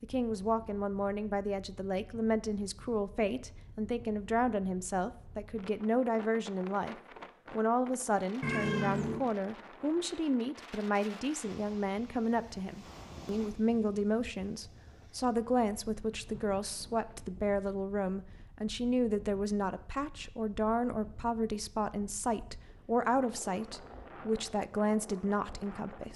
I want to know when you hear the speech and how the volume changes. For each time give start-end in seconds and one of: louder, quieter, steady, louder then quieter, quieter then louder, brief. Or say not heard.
0.0-26.1 steady.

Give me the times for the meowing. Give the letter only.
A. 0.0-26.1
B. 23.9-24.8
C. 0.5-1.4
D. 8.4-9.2
D.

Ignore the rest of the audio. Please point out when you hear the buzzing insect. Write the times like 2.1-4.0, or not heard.
not heard.